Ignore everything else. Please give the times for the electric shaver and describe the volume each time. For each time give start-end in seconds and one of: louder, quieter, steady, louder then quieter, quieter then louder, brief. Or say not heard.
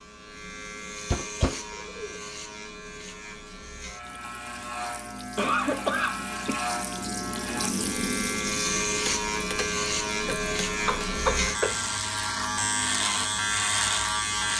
0.0-14.5 louder.